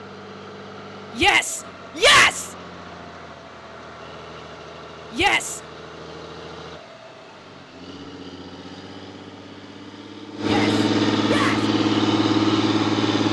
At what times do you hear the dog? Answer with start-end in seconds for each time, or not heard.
not heard.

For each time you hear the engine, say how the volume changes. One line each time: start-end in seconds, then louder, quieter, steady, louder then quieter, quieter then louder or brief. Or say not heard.
0.0-13.2 louder.